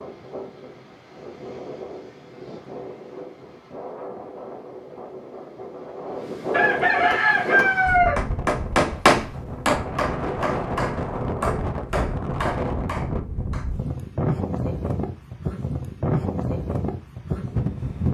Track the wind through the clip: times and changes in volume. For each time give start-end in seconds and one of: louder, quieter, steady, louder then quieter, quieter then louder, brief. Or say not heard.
0.0-18.0 louder.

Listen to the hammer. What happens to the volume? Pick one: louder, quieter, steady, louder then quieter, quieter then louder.
louder then quieter.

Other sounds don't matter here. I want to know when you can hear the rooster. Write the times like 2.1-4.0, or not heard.
6.5-8.2.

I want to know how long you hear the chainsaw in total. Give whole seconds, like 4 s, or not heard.
not heard.